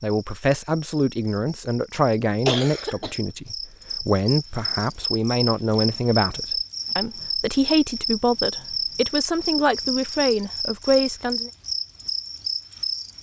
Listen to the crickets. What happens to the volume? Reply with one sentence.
The volume of the crickets goes up.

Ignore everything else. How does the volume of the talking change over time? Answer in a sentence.
The volume of the talking stays about the same.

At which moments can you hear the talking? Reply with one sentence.
The talking can be heard from 0.0 to 11.5 s.